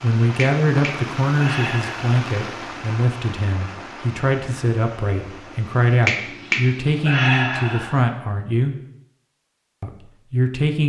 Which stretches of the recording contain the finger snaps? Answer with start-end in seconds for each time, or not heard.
0.3-2.1, 6.0-8.0.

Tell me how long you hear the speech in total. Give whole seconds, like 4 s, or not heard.
10 s.